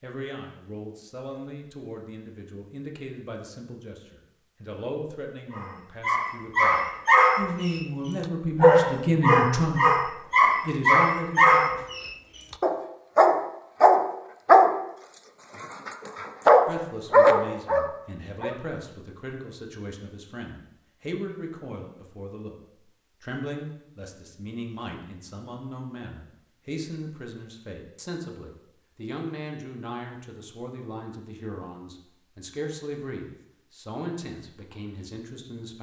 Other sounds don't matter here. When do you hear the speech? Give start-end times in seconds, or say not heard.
0.0-9.9, 10.6-11.8, 16.6-22.6, 23.2-35.7.